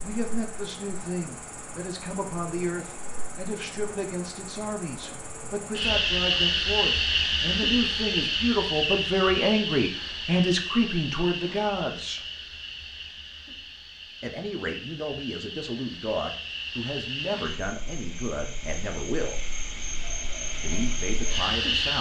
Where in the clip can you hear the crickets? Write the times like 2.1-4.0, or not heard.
0.0-21.9.